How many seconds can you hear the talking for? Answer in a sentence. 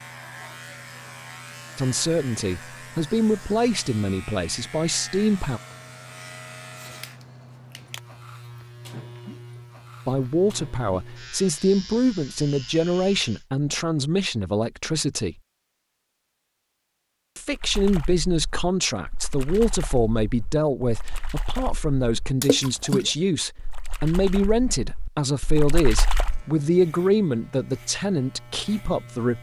The talking can be heard for 21 seconds in total.